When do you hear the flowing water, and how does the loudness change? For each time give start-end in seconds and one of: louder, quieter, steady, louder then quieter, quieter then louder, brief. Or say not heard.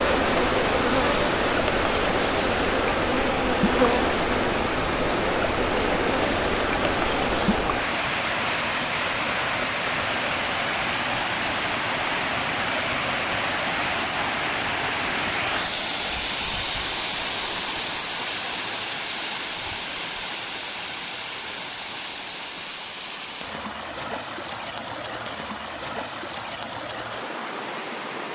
0.0-28.3 quieter.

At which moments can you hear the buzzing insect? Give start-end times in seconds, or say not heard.
0.0-7.7.